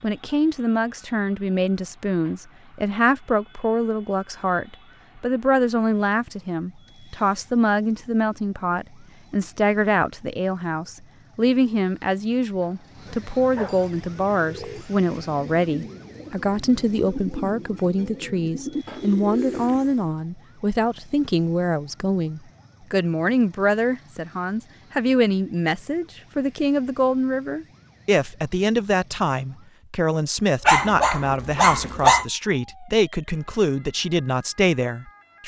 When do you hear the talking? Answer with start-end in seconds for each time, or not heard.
0.0-35.4.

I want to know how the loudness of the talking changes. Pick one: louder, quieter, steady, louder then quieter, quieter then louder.
steady.